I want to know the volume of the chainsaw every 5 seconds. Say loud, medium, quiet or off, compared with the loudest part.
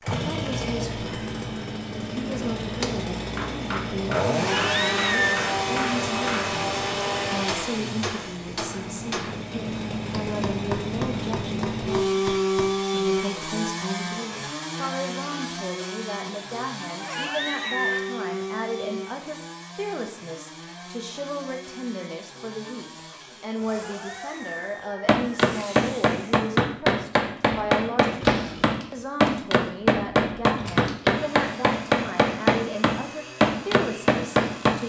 loud, loud, loud, medium, quiet, quiet, quiet.